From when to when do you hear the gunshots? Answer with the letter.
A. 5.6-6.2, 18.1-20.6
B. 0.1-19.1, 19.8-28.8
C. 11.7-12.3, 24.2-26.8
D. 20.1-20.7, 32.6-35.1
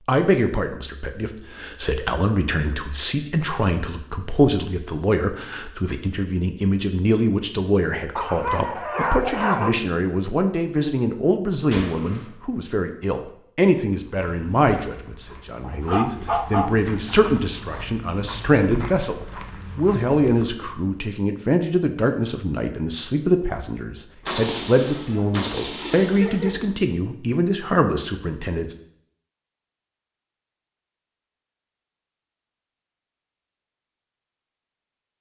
C.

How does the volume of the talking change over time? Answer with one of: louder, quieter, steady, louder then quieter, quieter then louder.
steady.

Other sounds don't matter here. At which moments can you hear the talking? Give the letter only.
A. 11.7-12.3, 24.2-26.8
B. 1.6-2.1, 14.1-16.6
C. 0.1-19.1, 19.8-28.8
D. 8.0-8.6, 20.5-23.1
C.